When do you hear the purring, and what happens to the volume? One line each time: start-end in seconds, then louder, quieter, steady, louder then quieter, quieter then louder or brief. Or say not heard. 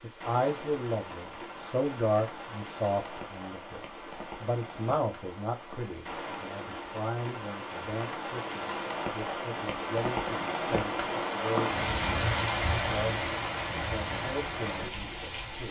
not heard.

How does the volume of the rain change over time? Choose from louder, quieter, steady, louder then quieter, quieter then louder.
louder.